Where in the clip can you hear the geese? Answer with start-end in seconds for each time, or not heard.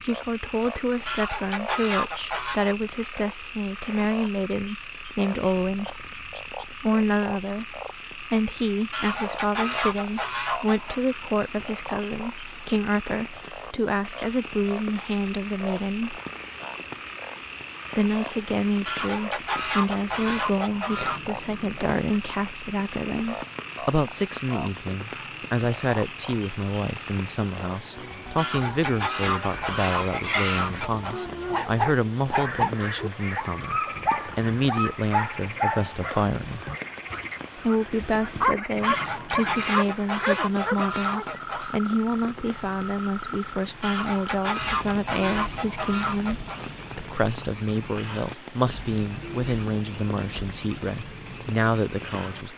1.1-2.6, 8.9-11.0, 18.9-21.4, 28.4-31.2, 38.8-41.8, 43.8-46.6.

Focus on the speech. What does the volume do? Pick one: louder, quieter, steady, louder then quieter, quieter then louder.
steady.